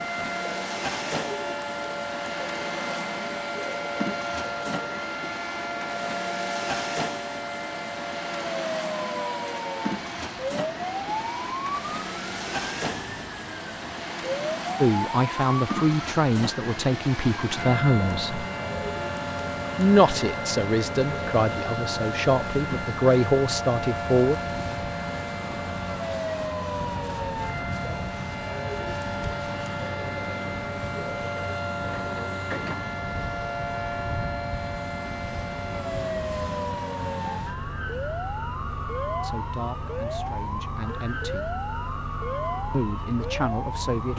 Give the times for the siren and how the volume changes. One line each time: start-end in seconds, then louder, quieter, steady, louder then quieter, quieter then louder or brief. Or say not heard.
0.0-44.1 steady.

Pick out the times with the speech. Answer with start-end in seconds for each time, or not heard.
14.8-18.4, 19.8-24.4, 39.2-41.5, 42.7-44.1.